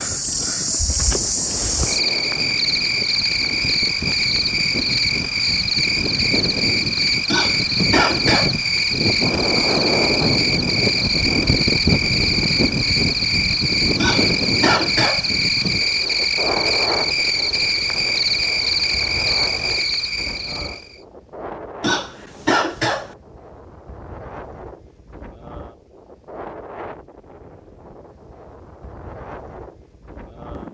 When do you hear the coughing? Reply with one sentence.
You can hear the coughing from 7.2 to 8.6 s, from 13.9 to 15.2 s and from 21.8 to 23.1 s.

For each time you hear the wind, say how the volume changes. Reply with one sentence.
The wind can be heard from 0.0 to 30.6 s, getting louder then quieter.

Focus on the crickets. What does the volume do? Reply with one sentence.
The loudness of the crickets stays about the same.